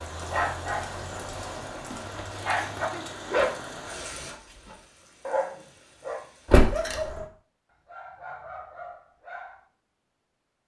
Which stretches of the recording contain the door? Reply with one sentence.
The door can be heard from 2.1 to 2.6 s and from 6.5 to 7.2 s.